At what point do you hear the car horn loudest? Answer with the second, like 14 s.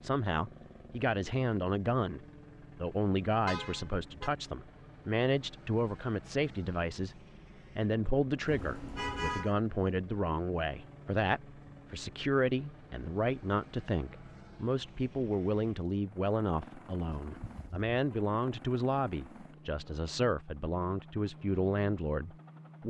9 s.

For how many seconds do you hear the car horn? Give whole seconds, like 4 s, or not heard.
3 s.